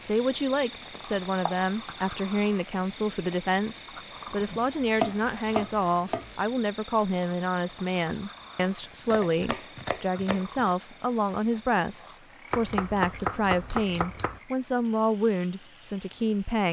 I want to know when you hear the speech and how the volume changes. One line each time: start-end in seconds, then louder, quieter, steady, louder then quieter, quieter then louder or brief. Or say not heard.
0.0-16.6 steady.